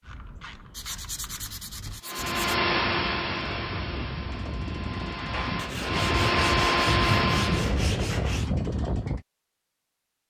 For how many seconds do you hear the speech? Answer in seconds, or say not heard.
not heard.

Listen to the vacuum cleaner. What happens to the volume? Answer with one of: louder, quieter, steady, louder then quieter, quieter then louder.
quieter then louder.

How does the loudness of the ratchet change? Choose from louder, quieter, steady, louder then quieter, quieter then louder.
louder.